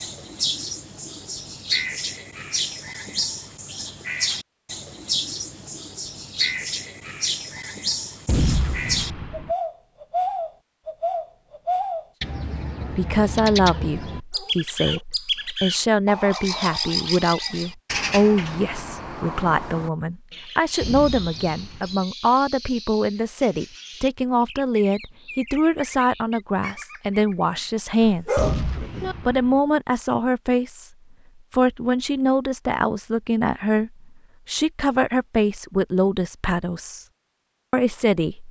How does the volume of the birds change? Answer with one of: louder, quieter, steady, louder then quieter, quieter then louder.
quieter.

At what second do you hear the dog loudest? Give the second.
28 s.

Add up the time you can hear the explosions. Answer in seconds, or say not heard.
4 s.